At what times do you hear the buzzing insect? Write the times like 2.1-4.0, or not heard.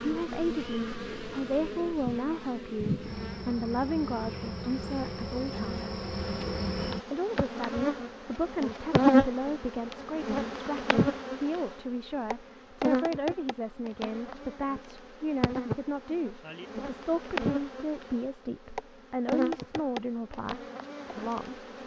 0.0-21.8.